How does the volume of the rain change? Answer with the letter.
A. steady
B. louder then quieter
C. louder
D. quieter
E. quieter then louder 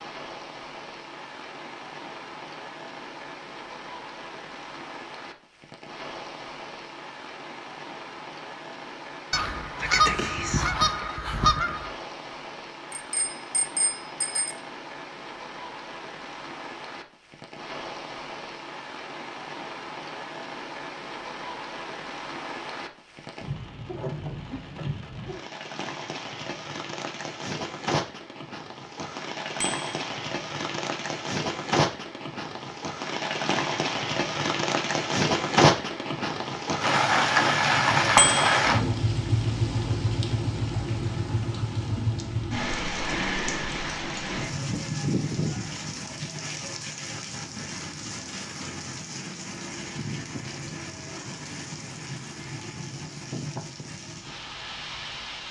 B.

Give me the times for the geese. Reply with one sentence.
The geese can be heard from 9.3 to 11.9 s.